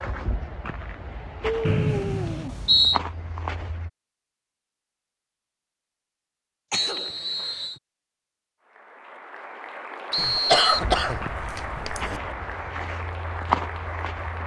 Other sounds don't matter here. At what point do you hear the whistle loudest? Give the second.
3 s.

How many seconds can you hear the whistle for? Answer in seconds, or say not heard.
3 s.